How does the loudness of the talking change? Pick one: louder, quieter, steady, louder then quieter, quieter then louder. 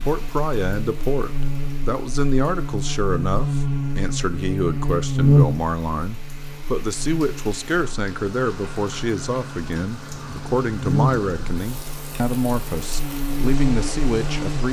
steady.